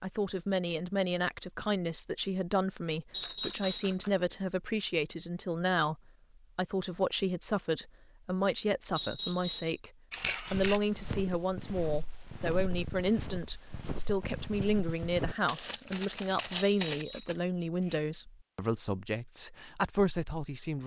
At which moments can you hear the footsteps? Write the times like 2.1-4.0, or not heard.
10.5-17.1.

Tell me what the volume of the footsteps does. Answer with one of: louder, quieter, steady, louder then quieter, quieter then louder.
louder.